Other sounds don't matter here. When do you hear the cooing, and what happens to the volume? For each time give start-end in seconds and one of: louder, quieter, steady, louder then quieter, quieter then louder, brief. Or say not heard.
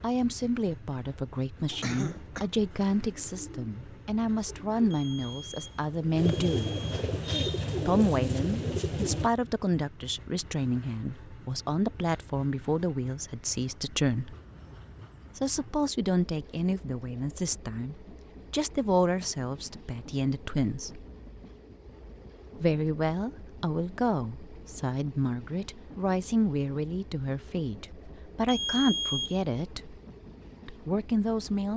1.6-9.3 louder.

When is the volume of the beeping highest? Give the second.
29 s.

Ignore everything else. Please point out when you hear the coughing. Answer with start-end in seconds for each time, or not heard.
1.8-2.5.